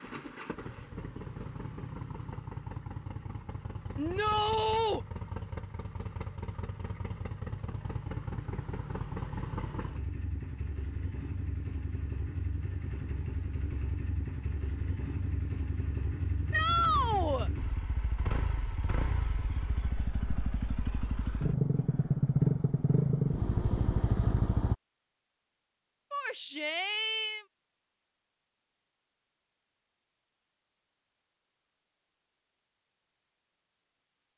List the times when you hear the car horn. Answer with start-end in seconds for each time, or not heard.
not heard.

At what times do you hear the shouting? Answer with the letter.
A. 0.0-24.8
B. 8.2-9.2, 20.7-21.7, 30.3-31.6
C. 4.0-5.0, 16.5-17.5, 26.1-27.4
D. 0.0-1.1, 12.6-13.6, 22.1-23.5
C.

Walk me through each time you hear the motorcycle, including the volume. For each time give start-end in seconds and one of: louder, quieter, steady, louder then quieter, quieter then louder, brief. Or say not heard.
0.0-24.8 louder.